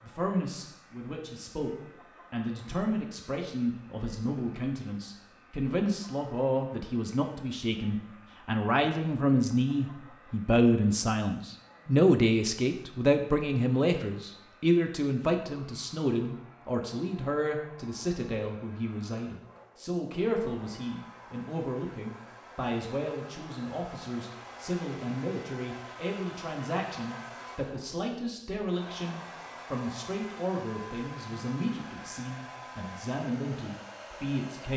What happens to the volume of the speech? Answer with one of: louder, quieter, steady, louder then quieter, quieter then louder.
louder then quieter.